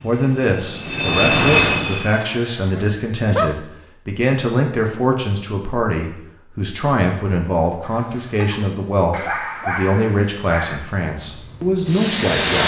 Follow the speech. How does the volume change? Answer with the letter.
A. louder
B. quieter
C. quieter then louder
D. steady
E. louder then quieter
D.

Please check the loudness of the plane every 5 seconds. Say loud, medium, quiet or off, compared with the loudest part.
loud, off, loud.